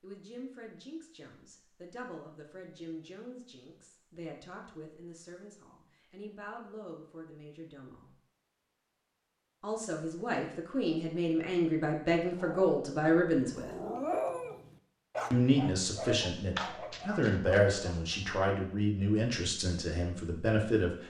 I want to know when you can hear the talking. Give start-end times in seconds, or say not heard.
0.0-8.2, 9.6-13.7, 15.3-21.0.